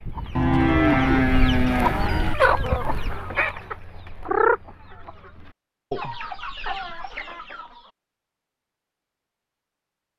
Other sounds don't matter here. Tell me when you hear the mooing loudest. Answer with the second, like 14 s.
1 s.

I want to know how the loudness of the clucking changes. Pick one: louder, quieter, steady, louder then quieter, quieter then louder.
louder then quieter.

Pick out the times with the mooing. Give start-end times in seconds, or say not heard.
0.3-2.4.